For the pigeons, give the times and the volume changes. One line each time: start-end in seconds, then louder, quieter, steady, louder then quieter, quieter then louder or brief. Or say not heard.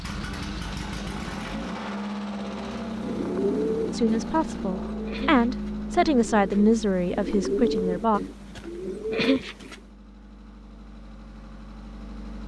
2.9-9.8 quieter then louder.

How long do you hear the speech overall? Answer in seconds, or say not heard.
4 s.